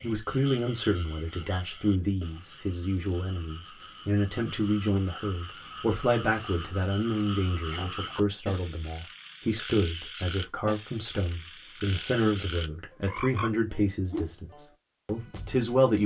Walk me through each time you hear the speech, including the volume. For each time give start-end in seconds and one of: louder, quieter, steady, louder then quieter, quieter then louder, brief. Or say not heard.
0.0-16.0 steady.